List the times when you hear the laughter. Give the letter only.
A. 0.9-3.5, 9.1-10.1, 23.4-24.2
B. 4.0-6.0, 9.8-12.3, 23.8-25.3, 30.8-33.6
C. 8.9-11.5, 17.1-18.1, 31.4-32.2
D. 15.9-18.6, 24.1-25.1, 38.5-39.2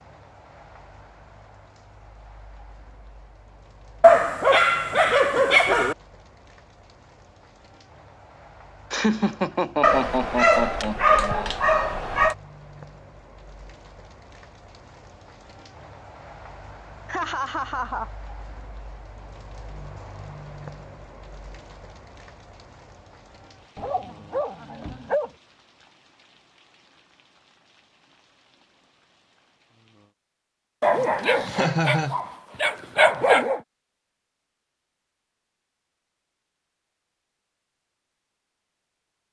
C.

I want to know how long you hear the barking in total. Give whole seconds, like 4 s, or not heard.
9 s.